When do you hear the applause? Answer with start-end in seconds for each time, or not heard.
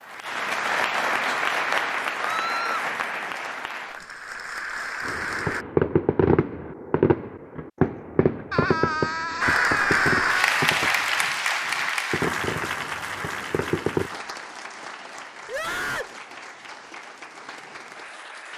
0.0-5.7, 9.4-18.5.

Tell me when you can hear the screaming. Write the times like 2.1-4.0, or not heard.
2.2-2.9, 8.5-10.6, 15.4-16.1.